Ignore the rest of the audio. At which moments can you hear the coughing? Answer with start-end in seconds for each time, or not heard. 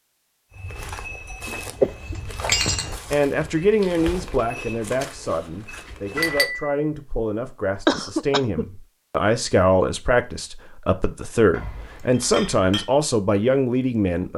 1.8-2.4, 7.8-8.7.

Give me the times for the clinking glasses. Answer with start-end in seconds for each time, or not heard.
1.4-3.0, 6.2-6.8, 11.5-12.8.